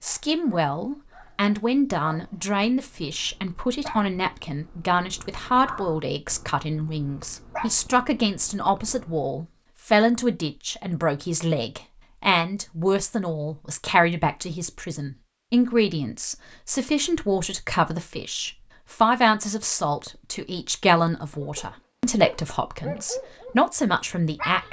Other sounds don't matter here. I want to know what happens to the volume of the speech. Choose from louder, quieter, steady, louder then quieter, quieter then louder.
steady.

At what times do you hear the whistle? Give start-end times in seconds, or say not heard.
not heard.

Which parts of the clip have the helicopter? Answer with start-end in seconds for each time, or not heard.
not heard.